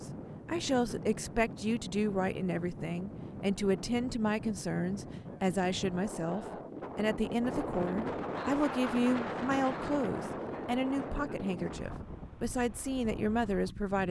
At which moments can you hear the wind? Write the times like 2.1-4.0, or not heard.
0.0-14.0.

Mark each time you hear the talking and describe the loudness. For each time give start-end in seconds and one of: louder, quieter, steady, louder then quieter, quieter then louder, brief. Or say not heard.
0.0-14.0 steady.